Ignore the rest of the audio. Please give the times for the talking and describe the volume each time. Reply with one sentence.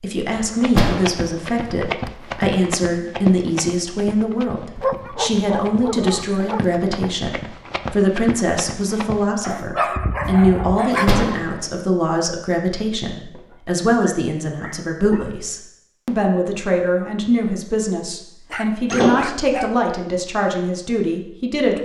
You can hear the talking from 0.0 to 21.8 s, at a steady volume.